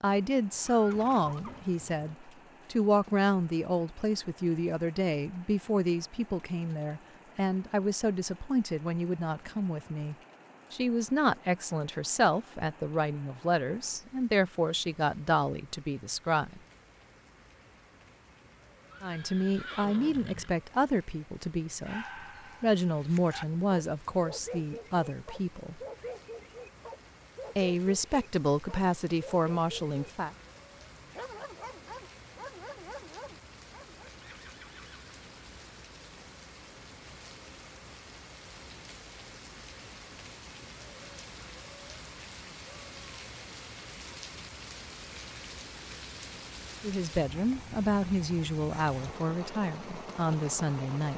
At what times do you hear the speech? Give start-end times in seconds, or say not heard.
0.0-16.6, 19.0-25.8, 27.6-30.3, 46.8-51.1.